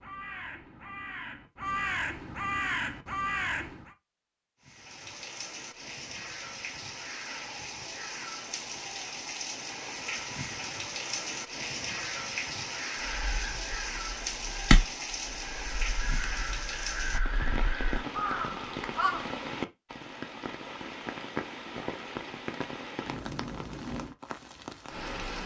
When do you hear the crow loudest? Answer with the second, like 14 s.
15 s.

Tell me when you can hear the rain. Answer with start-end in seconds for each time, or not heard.
4.6-25.4.